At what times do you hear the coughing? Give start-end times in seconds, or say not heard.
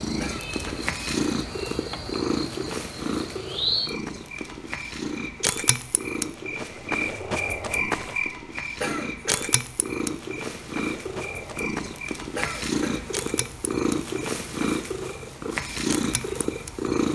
0.2-0.8, 8.8-9.5, 12.3-13.1.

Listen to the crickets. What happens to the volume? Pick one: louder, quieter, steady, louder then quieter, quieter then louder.
louder then quieter.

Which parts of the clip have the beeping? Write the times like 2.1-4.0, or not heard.
not heard.